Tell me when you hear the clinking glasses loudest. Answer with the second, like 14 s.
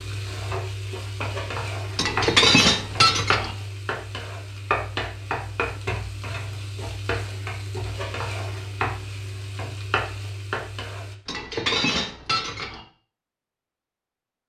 3 s.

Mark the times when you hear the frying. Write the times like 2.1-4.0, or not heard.
0.0-11.2.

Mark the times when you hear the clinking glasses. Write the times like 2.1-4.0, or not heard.
1.9-3.5, 11.2-12.8.